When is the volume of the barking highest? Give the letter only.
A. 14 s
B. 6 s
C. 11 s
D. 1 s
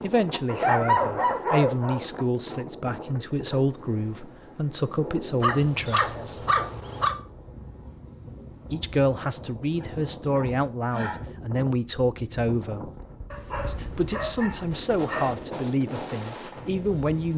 D.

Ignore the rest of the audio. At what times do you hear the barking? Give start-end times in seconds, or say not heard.
0.5-2.0, 5.4-7.2, 9.6-11.2, 13.3-15.5.